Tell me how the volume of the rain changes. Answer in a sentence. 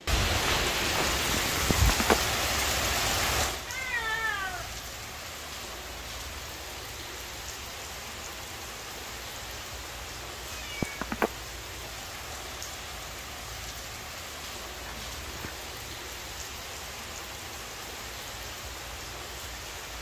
The volume of the rain goes down.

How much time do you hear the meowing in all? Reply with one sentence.
You can hear the meowing for 3 seconds altogether.